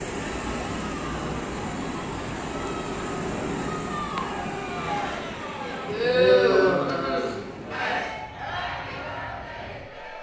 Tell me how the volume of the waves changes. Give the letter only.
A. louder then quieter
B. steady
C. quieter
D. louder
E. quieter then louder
C.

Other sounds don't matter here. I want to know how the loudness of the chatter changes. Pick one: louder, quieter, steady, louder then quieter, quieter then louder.
louder then quieter.